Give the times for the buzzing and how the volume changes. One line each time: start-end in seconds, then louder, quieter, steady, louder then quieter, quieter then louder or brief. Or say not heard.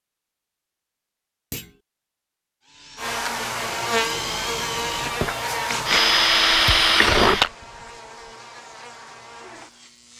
3.0-10.1 quieter.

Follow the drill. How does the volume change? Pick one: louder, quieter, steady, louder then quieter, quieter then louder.
louder.